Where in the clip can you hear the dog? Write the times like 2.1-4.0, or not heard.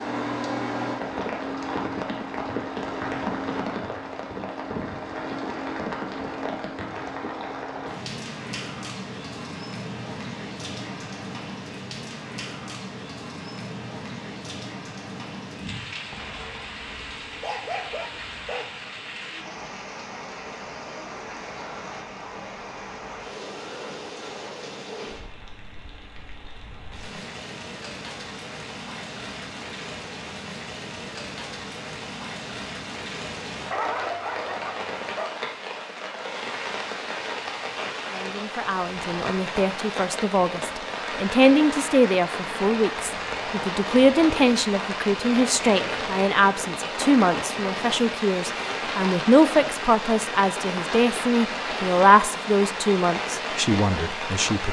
16.1-18.7, 33.7-35.3.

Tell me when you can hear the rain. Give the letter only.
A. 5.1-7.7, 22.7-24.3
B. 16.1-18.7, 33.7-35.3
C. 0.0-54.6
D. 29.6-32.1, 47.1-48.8
C.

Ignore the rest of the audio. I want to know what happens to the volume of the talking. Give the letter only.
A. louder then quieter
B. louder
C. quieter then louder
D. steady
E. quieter
D.